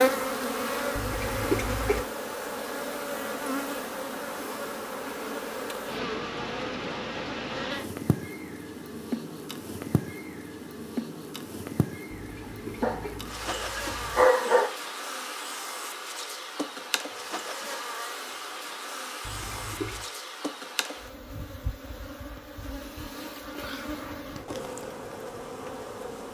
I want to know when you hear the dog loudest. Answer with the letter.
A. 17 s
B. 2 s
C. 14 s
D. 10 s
C.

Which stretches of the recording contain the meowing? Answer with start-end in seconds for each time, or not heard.
0.9-2.0, 12.1-14.3, 19.2-20.1.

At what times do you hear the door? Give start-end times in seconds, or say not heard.
not heard.